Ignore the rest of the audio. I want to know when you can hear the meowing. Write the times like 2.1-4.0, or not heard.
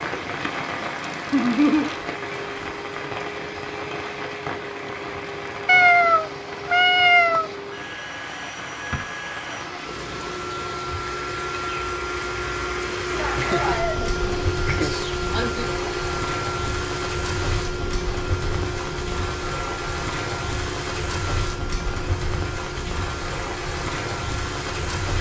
5.7-7.5.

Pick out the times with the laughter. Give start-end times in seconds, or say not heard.
1.3-1.9, 13.1-15.7.